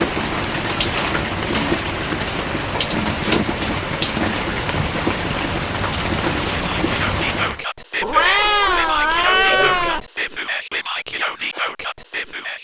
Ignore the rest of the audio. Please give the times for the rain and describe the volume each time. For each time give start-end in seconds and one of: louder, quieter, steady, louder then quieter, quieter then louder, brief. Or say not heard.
0.0-7.6 steady.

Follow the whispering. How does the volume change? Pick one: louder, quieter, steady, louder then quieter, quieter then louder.
steady.